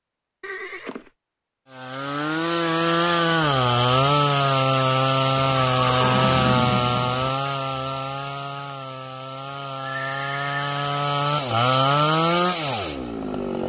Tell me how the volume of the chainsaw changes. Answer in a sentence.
The volume of the chainsaw goes down, then up.